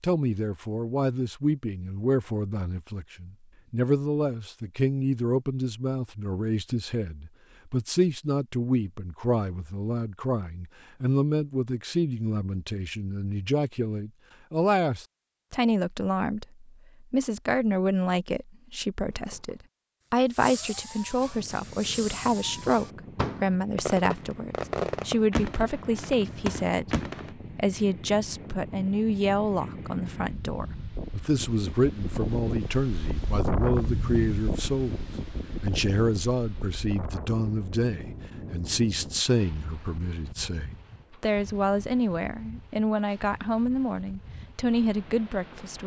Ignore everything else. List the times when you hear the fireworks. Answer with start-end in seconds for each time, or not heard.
19.1-27.4.